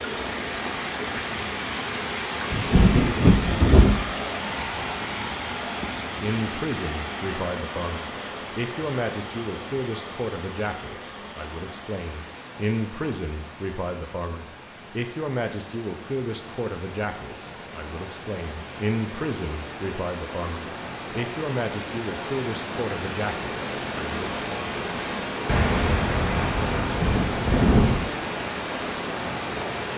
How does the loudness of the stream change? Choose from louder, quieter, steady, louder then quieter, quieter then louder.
quieter then louder.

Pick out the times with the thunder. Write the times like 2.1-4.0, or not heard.
2.5-4.0, 25.4-28.1.